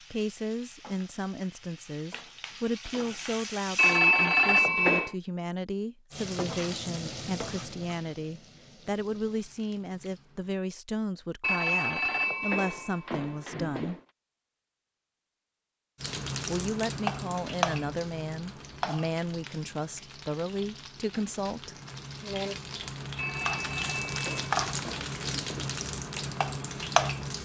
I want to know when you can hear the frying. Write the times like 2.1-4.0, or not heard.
0.0-4.0, 6.1-10.6, 16.0-27.3.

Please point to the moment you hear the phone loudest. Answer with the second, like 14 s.
4 s.